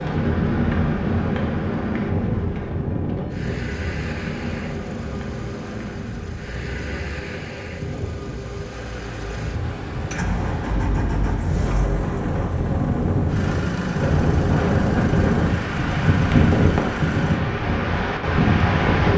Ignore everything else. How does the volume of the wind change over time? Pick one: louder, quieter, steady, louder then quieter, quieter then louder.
quieter then louder.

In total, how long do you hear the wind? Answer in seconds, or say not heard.
19 s.